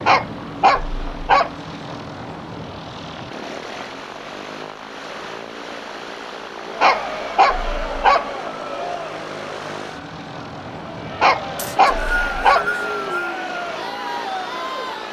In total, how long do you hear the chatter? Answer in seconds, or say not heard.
8 s.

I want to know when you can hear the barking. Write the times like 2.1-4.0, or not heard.
0.1-1.5, 6.8-8.2, 11.2-12.7.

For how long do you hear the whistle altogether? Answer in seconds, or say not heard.
2 s.